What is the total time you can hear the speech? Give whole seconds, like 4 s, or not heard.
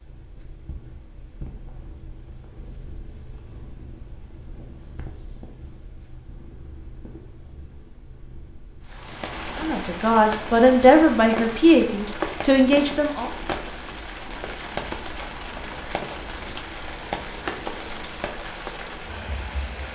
4 s.